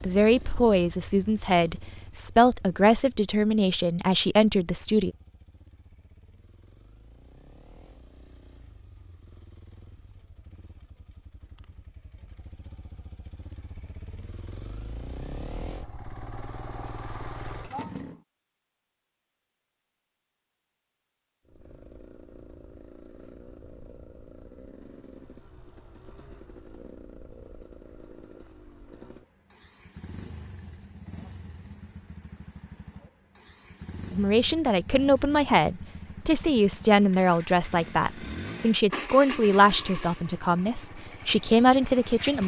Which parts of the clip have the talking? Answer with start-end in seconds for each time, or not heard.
0.0-5.1, 34.1-42.4.